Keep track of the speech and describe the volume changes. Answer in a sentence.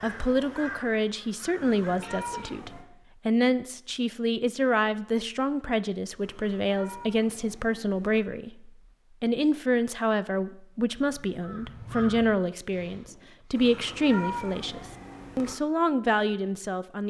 The volume of the speech stays about the same.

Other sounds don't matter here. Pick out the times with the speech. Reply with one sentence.
The speech can be heard from 0.0 to 17.0 s.